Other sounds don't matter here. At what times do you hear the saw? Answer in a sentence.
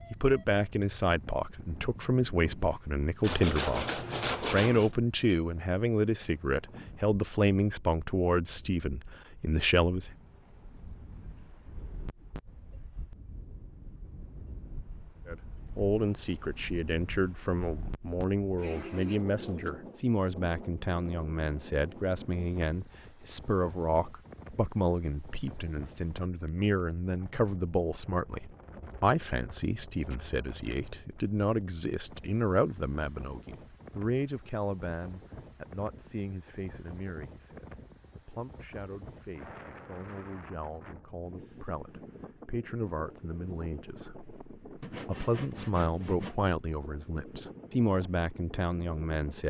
The saw can be heard from 3.2 to 5.0 s and from 44.8 to 46.4 s.